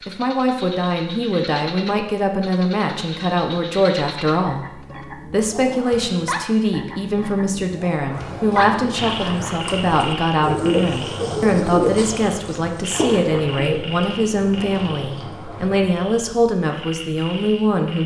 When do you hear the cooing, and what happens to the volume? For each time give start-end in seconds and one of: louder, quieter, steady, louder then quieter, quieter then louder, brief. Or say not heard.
8.1-15.9 louder then quieter.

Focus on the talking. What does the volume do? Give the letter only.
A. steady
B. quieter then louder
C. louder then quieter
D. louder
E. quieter
A.